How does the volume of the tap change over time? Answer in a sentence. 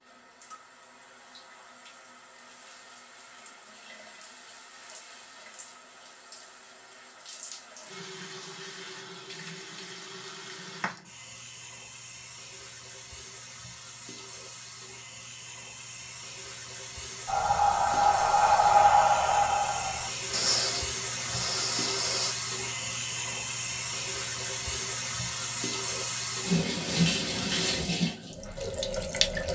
The volume of the tap goes up.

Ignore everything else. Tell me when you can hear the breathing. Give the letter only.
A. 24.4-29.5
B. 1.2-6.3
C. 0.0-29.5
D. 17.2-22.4
D.